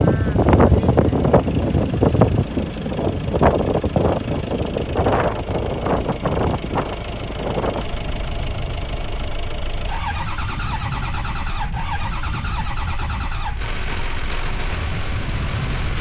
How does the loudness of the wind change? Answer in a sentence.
The loudness of the wind goes down.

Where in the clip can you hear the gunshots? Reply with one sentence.
The gunshots can't be heard in this clip.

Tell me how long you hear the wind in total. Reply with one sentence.
The wind can be heard for 16 seconds in total.